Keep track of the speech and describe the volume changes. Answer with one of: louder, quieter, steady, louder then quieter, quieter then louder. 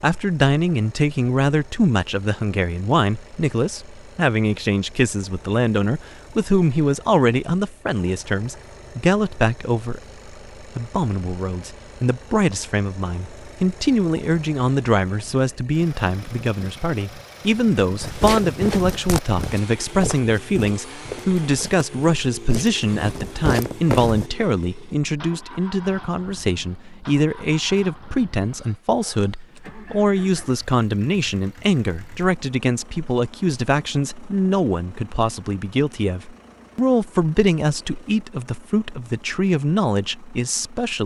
steady.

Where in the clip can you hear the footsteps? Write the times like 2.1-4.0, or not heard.
18.0-24.2.